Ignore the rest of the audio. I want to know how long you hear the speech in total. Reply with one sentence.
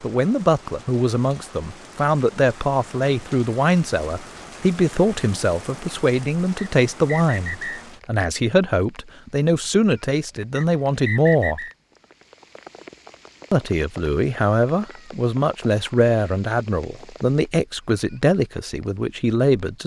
You can hear the speech for 18 seconds altogether.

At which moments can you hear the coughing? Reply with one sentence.
The coughing can't be heard in this clip.